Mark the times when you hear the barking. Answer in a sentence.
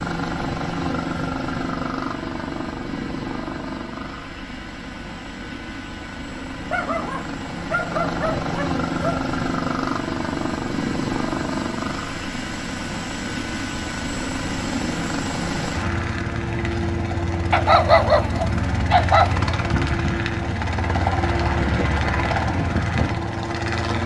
The barking can be heard from 6.7 to 9.2 s and from 17.5 to 19.5 s.